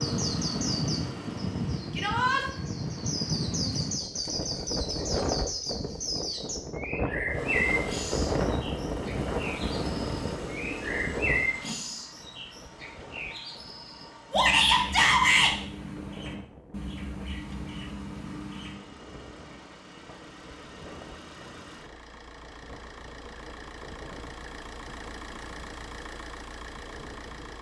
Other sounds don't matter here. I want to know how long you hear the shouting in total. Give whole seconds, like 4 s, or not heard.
2 s.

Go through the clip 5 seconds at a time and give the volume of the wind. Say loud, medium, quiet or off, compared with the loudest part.
loud, loud, medium, quiet, quiet, quiet.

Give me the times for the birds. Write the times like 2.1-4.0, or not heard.
0.0-18.8.